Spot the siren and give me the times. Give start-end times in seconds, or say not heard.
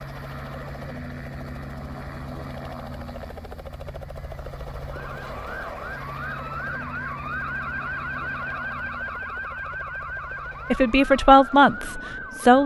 4.9-12.6.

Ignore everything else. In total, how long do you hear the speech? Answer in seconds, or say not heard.
2 s.